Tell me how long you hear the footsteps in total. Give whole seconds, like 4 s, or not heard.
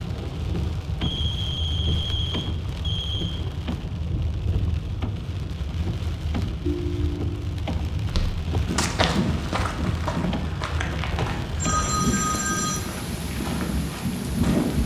7 s.